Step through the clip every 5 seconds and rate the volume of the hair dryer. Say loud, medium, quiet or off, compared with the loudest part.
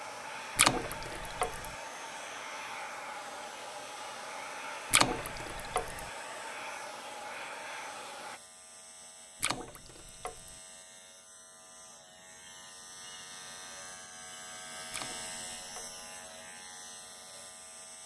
loud, loud, off, off.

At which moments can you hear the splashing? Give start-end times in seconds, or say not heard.
0.6-1.7, 4.9-6.0, 9.4-10.6, 14.9-16.0.